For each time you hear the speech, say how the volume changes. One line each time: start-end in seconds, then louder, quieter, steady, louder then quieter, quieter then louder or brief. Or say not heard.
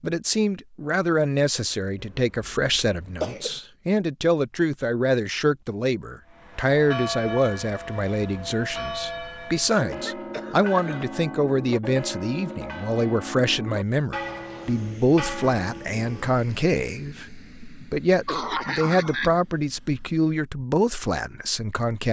0.0-22.0 steady.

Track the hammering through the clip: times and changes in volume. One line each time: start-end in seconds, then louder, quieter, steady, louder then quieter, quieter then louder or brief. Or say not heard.
not heard.